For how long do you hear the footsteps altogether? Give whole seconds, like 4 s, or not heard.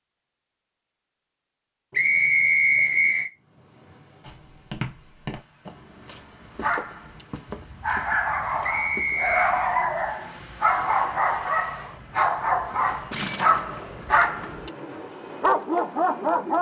5 s.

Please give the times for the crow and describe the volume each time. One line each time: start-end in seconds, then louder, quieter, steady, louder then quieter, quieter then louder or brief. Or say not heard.
not heard.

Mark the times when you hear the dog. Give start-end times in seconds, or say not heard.
6.5-16.5.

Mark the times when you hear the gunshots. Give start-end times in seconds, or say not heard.
13.1-14.5.